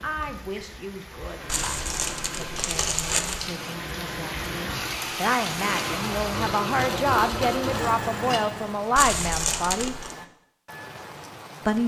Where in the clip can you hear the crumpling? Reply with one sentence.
You can hear the crumpling from 1.4 to 3.5 s and from 8.9 to 10.2 s.